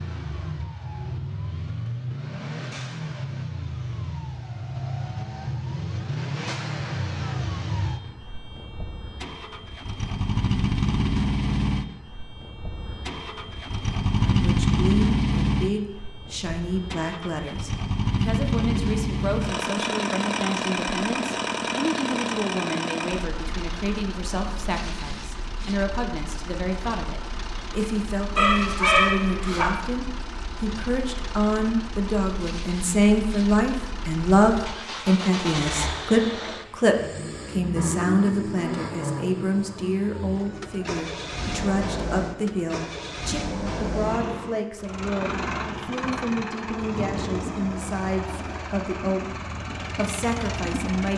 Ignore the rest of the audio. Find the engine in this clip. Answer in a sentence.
You can hear the engine from 0.0 to 51.1 s.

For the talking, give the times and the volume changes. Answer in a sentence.
The talking can be heard from 14.2 to 51.1 s, getting louder then quieter.